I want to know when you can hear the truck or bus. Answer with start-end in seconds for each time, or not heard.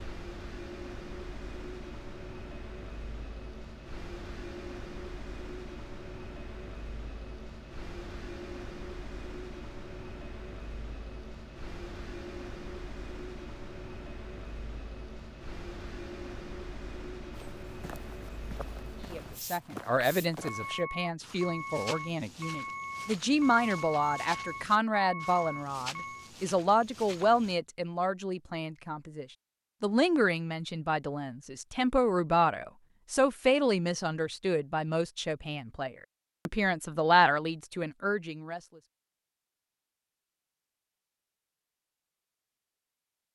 0.0-26.3.